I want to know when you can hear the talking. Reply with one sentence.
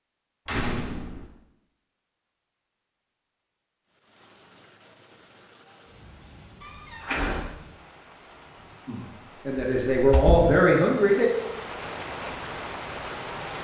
You can hear the talking from 8.8 to 11.3 s.